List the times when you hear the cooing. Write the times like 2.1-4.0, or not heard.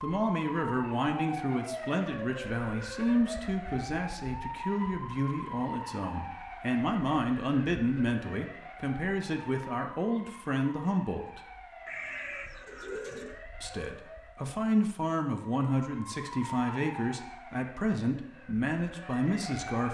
11.8-13.4.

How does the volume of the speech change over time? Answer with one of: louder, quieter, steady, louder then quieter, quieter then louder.
steady.